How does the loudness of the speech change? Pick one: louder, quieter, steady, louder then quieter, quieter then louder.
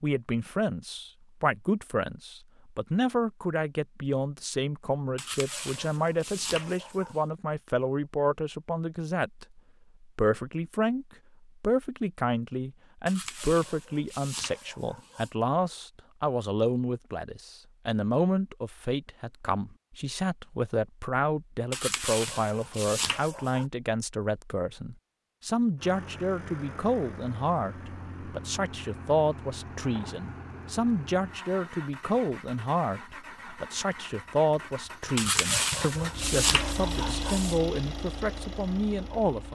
steady.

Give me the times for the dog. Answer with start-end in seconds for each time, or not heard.
5.2-7.2, 13.1-15.3, 21.7-23.6, 35.1-37.6.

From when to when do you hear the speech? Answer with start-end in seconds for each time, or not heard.
0.0-39.5.